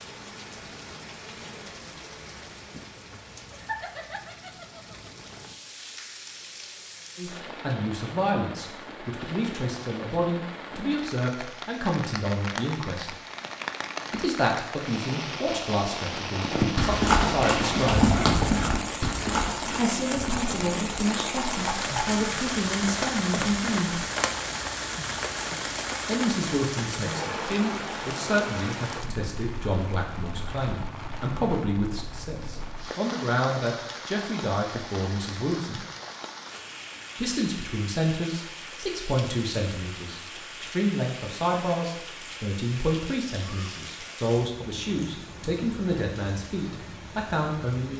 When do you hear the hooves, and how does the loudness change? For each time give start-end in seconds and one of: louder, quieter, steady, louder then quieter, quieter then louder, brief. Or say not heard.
16.4-22.1 quieter.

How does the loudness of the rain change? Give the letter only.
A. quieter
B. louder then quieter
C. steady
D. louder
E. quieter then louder
B.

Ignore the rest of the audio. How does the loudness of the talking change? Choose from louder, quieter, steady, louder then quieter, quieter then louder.
steady.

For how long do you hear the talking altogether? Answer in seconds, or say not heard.
35 s.